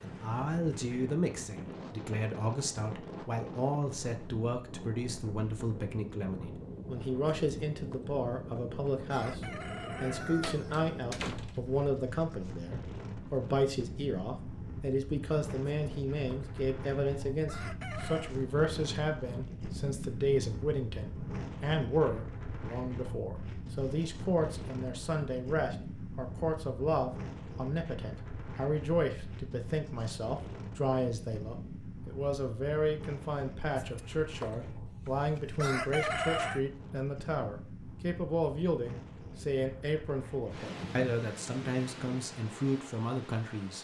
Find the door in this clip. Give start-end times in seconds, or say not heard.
10.4-11.8.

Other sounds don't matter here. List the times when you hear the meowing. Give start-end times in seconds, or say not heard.
not heard.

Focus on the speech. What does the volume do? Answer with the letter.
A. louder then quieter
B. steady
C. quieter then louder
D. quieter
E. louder
B.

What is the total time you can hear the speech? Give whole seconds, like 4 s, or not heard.
43 s.